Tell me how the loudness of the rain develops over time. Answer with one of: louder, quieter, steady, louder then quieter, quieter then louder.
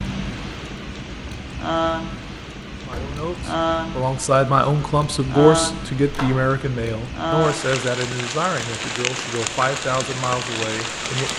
steady.